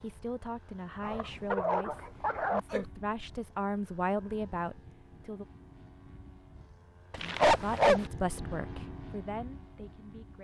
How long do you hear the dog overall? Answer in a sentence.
You can hear the dog for 3 seconds altogether.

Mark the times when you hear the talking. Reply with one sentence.
You can hear the talking from 0.0 to 5.5 s and from 7.2 to 10.3 s.